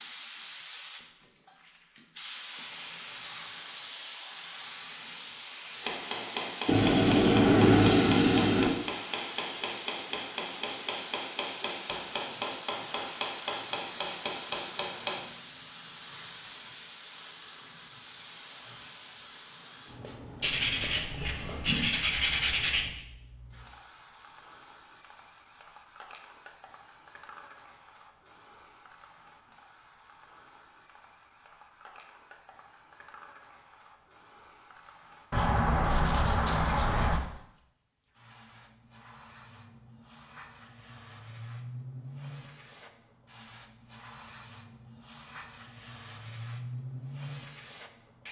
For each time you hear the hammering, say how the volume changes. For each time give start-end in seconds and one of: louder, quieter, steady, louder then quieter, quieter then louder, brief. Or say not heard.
5.8-15.2 steady.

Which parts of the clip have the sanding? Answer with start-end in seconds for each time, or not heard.
6.7-8.7, 20.4-22.9, 35.3-37.2.